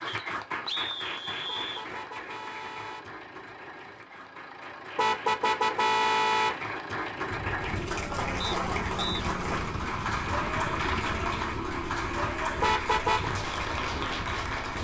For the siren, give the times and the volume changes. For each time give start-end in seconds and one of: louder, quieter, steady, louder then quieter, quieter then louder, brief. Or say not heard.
not heard.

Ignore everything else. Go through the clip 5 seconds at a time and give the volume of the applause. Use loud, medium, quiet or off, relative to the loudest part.
medium, loud, loud.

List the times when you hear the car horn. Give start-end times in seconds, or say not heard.
1.4-3.0, 5.0-6.5, 12.6-13.3.